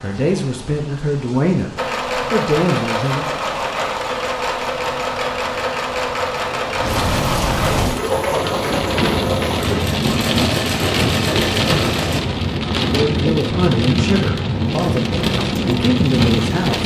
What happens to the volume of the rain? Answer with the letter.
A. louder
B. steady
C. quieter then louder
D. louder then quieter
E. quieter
A.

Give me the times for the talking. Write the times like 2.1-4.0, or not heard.
0.0-3.2, 12.8-16.8.